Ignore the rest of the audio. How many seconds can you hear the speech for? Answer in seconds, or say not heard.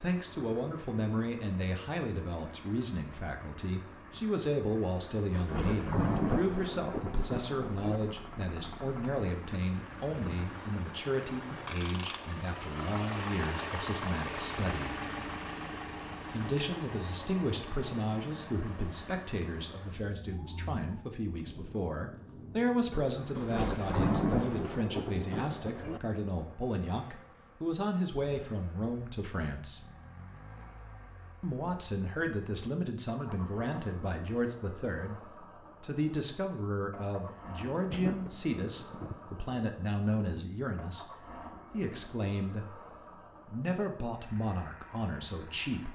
43 s.